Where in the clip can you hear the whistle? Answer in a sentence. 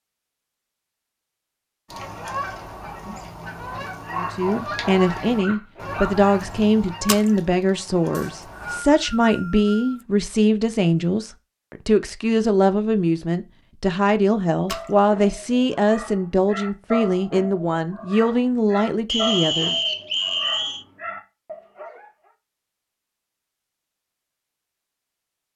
You can hear the whistle from 8.1 to 10.1 s and from 19.1 to 20.9 s.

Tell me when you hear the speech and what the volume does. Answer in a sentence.
The speech can be heard from 4.1 to 19.8 s, at a steady volume.